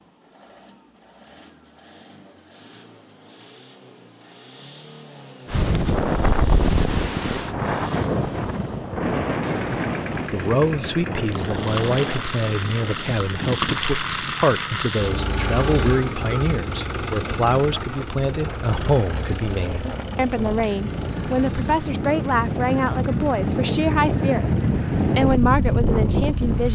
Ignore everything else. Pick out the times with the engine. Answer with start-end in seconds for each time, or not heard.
0.0-26.7.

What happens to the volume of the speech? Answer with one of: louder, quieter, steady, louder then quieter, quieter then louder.
steady.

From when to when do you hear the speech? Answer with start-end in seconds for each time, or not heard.
10.3-26.7.